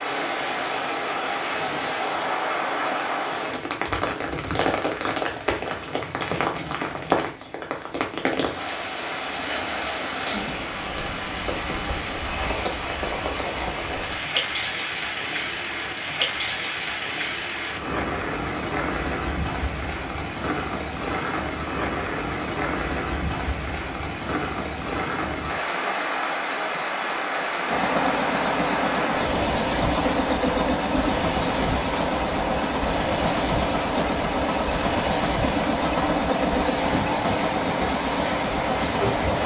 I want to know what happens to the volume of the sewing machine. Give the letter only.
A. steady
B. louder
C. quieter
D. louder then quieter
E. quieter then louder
A.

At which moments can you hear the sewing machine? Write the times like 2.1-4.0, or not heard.
27.6-39.4.